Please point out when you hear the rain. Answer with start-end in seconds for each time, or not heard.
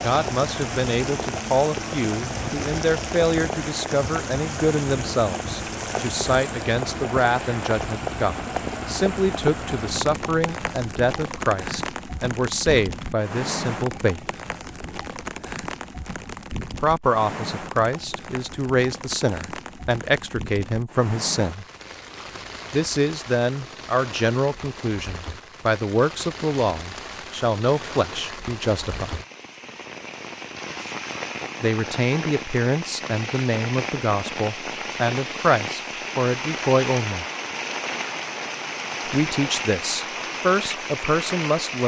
0.0-41.8.